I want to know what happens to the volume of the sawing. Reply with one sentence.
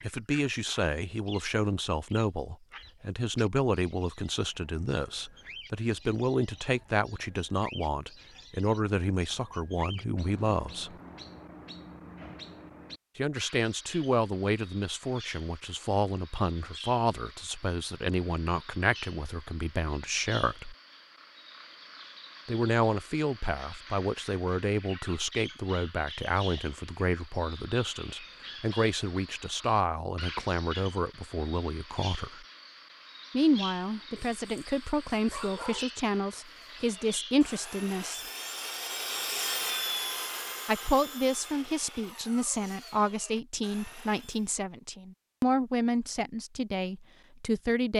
The loudness of the sawing goes up, then down.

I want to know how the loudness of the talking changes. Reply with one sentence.
The volume of the talking stays about the same.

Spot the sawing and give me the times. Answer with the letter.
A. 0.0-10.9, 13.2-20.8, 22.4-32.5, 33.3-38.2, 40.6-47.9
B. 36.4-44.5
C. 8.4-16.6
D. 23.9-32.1
B.